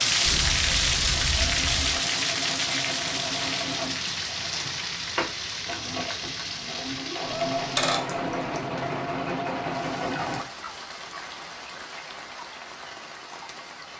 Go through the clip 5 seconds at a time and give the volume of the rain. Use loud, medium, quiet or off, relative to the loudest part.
loud, medium, quiet.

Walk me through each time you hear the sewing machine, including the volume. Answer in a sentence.
The sewing machine can be heard from 0.0 to 10.4 s, getting louder.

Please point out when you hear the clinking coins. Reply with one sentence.
The clinking coins can be heard from 4.5 to 4.9 s and from 7.5 to 8.6 s.